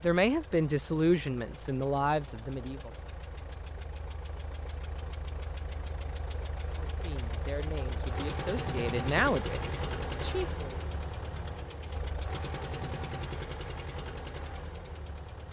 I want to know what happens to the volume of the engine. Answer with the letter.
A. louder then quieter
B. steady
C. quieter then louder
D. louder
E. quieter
D.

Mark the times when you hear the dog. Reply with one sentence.
The dog can't be heard in this clip.